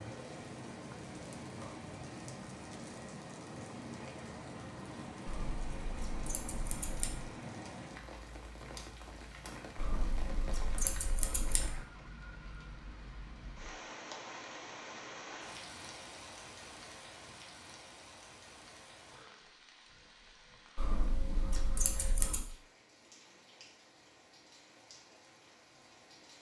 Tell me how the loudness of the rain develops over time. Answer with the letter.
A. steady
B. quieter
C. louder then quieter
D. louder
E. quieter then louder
B.